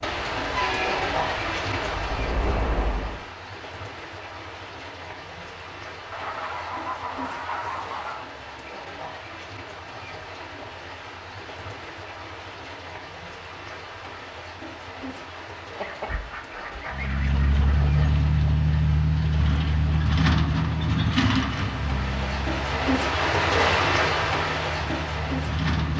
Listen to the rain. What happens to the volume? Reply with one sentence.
The volume of the rain goes down, then up.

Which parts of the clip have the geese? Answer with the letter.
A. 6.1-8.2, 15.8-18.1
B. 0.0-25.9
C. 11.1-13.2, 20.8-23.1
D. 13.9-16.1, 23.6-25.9
A.